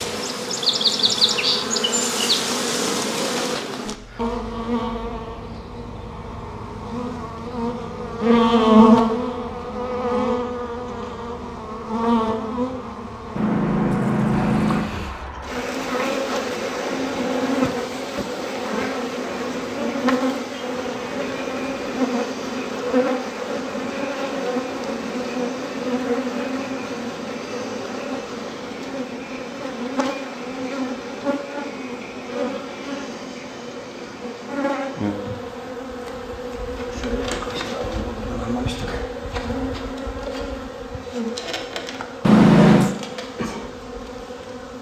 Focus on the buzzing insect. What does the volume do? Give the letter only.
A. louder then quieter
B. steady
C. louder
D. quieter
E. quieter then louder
D.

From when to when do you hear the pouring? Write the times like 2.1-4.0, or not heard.
13.3-14.9, 42.2-43.0.